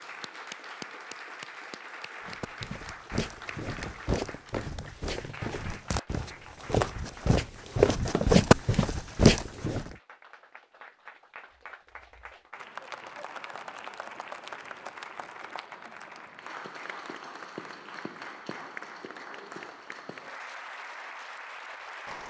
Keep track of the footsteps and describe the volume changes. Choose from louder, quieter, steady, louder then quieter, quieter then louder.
louder.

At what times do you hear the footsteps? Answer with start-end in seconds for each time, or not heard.
2.2-9.9.